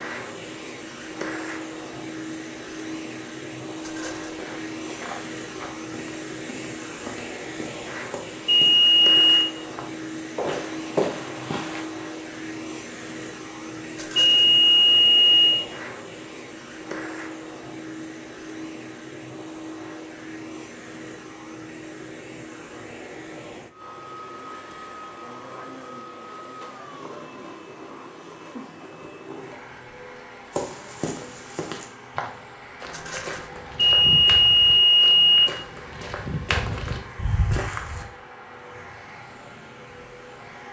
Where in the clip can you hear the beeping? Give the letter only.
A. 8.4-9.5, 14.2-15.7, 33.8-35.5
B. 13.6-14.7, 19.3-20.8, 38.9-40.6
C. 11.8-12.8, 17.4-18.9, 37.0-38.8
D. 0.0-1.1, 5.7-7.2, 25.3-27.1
A.